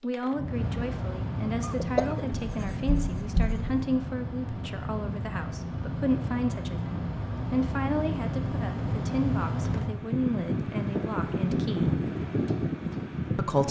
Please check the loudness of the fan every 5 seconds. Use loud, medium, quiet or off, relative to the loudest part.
medium, loud, loud.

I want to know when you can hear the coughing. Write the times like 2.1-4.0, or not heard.
1.6-2.4.